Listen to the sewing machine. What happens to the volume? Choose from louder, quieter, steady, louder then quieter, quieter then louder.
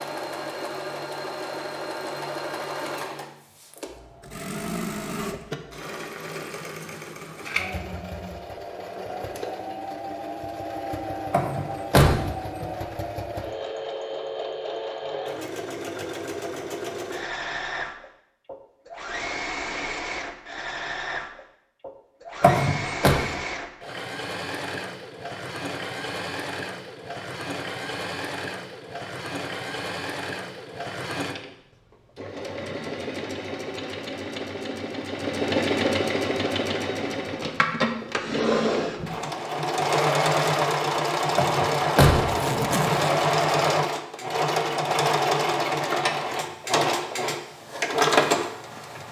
louder.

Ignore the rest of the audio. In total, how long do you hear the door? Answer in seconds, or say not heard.
3 s.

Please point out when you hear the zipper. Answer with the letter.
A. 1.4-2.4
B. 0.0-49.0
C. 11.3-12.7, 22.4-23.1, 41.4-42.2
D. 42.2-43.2
D.